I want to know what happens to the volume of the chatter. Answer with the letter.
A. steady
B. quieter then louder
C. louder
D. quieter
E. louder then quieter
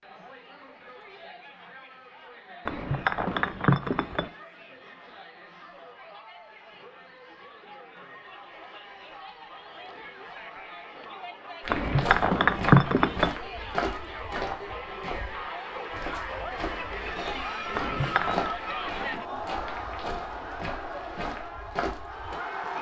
C.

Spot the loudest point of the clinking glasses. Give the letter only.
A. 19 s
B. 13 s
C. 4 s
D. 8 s
B.